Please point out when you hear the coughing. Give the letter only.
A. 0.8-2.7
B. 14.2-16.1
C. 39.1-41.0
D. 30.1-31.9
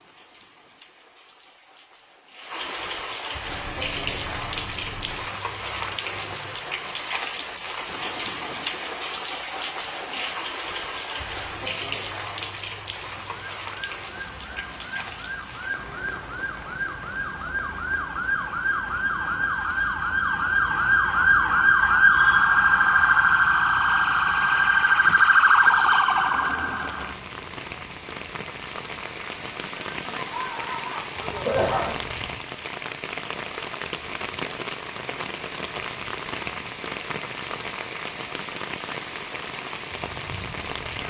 D.